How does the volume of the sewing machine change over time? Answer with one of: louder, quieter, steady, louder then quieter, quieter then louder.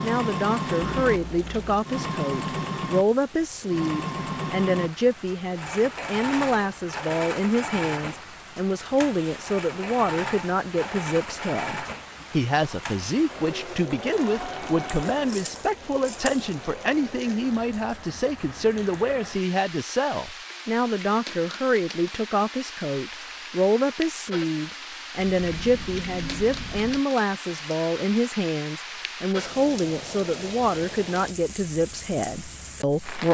quieter.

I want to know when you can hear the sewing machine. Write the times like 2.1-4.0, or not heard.
0.0-15.6.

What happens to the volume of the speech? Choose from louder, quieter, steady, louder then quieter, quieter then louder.
steady.